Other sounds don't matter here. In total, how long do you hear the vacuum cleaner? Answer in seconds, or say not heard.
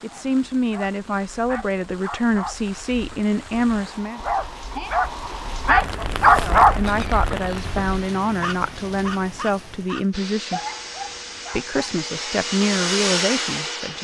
4 s.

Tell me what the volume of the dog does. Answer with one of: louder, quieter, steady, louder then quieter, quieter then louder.
louder then quieter.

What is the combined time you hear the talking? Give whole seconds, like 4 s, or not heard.
11 s.